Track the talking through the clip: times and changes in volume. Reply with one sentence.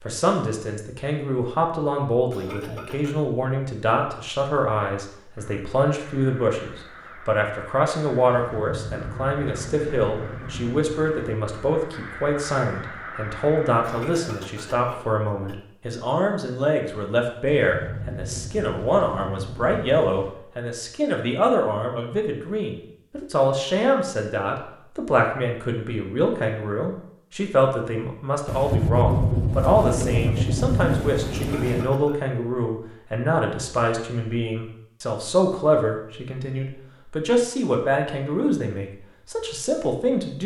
You can hear the talking from 0.0 to 40.4 s, at a steady volume.